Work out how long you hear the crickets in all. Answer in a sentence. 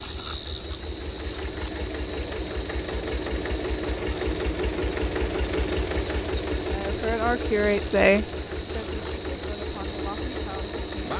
You can hear the crickets for 11 seconds altogether.